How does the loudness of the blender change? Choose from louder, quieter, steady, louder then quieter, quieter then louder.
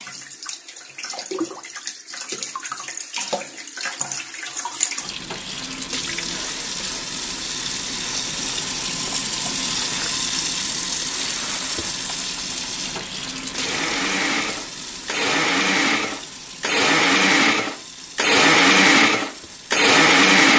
louder.